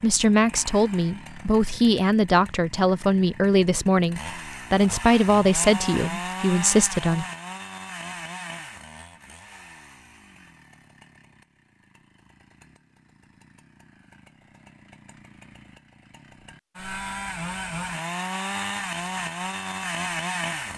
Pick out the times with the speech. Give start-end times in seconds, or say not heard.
0.0-7.2.